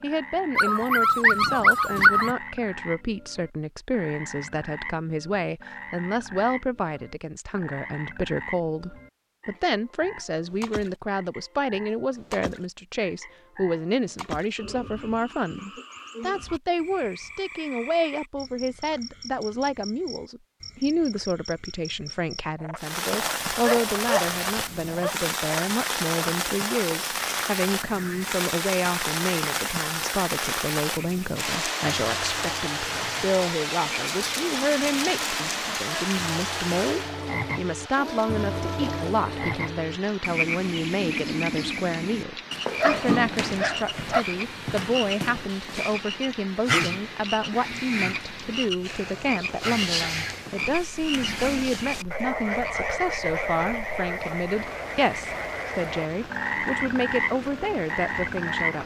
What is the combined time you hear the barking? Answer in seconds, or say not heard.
5 s.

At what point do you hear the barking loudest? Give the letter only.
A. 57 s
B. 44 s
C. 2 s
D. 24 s
C.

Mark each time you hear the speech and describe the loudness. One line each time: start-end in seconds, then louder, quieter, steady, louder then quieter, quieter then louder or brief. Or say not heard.
0.0-58.8 steady.